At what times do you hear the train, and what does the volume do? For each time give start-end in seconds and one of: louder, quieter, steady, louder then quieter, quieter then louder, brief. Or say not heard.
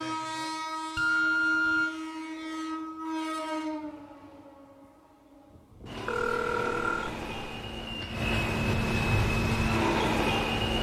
0.0-10.7 quieter then louder.